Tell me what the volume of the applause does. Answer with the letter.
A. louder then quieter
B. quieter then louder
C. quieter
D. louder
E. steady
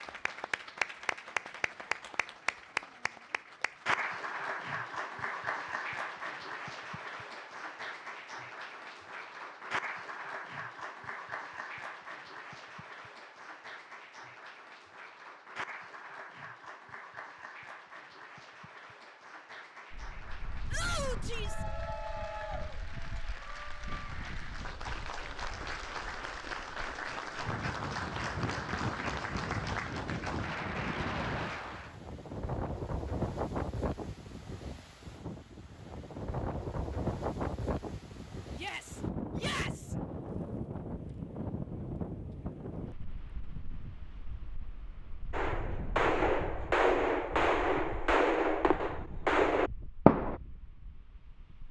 B.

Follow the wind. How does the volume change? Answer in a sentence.
The loudness of the wind goes up, then down.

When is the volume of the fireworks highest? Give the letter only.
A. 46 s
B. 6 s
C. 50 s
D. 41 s
C.